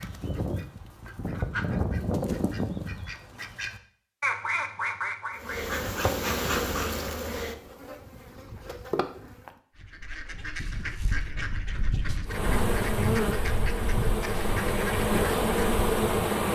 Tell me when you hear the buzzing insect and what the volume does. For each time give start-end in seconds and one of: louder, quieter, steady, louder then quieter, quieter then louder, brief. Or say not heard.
5.3-9.6 quieter then louder
12.2-16.5 quieter then louder.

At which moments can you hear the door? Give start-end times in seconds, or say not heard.
not heard.